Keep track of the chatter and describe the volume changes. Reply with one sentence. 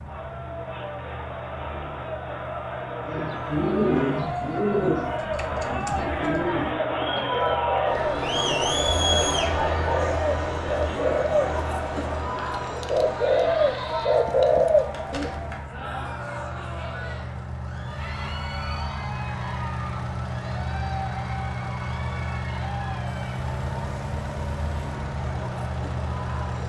The loudness of the chatter goes up, then down.